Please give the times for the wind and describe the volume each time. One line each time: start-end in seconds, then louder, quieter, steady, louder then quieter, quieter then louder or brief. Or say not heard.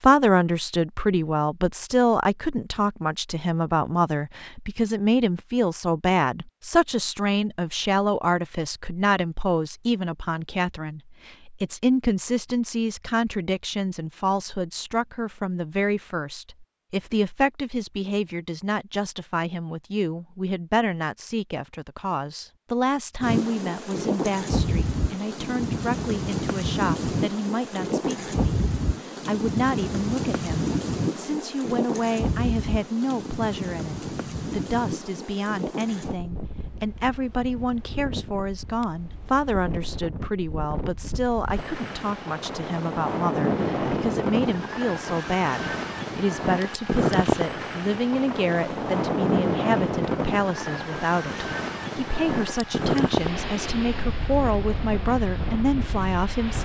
23.2-56.5 quieter then louder.